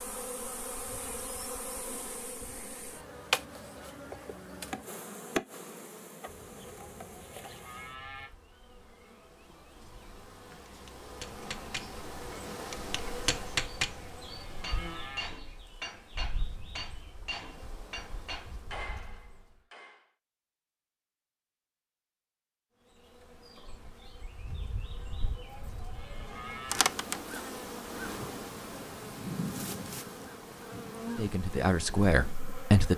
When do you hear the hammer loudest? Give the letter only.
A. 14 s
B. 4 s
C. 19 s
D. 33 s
A.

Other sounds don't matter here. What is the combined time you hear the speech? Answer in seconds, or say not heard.
2 s.